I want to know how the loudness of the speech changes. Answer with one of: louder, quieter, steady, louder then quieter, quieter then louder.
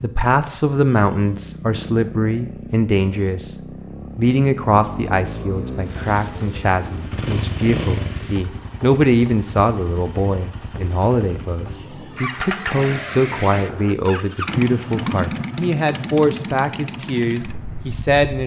steady.